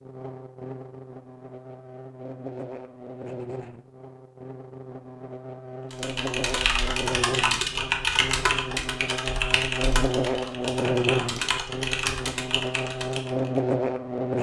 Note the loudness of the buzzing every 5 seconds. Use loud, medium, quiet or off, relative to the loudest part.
quiet, medium, loud.